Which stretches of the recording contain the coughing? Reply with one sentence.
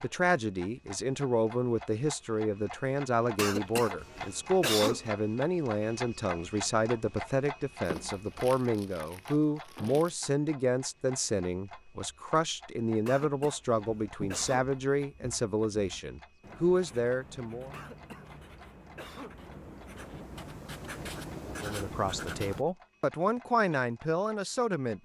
The coughing can be heard from 3.4 to 5.1 s, from 13.1 to 14.8 s and from 17.7 to 19.4 s.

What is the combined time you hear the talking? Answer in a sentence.
The talking can be heard for 21 seconds in total.